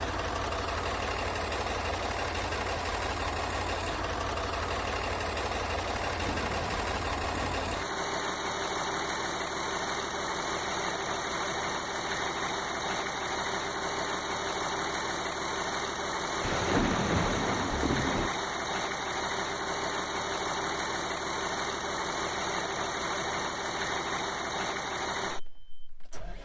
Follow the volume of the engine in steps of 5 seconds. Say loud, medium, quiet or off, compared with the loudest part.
loud, loud, loud, loud, loud, medium.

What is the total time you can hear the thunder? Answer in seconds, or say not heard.
4 s.